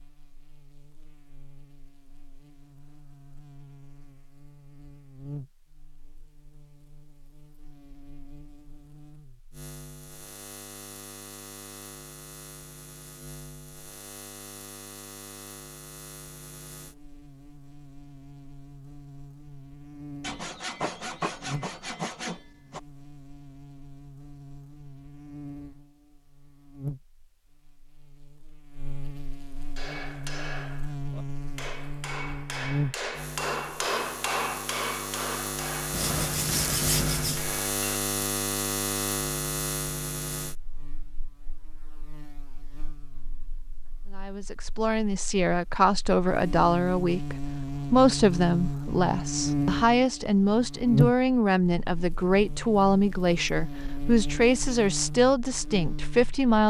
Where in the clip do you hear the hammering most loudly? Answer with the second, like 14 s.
34 s.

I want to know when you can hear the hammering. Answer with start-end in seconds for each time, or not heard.
29.8-37.8.